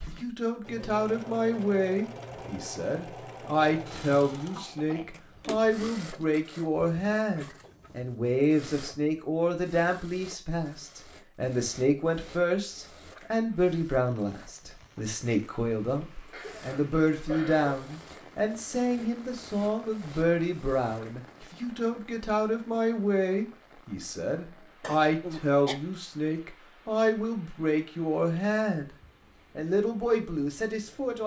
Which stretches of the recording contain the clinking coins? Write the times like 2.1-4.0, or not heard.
not heard.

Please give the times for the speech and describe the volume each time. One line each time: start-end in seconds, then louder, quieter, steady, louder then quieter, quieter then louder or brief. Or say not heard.
0.1-28.9 steady
29.6-31.2 brief.